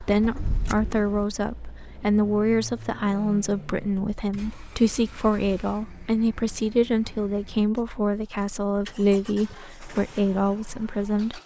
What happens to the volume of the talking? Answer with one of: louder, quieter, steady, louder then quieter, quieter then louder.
steady.